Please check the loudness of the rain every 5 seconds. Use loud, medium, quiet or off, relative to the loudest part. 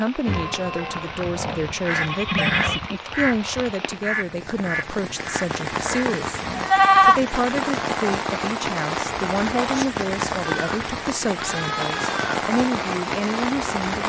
medium, loud, loud.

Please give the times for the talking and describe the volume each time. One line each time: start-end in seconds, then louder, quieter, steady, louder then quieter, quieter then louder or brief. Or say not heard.
0.0-14.0 steady.